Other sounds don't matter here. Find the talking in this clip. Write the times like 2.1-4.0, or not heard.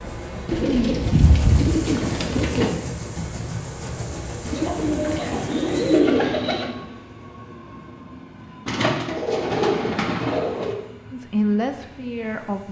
11.1-12.6.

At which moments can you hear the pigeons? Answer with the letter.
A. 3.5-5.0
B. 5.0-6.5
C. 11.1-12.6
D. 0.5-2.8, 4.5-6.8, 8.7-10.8
D.